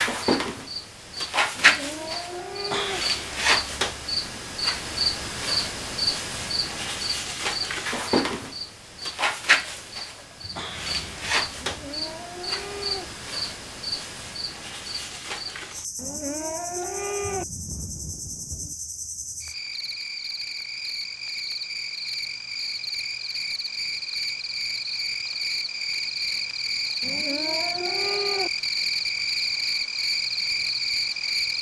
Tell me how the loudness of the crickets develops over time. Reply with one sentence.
The loudness of the crickets goes down, then up.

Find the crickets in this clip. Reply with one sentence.
You can hear the crickets from 0.0 to 31.5 s.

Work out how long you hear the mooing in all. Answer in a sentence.
You can hear the mooing for 6 seconds altogether.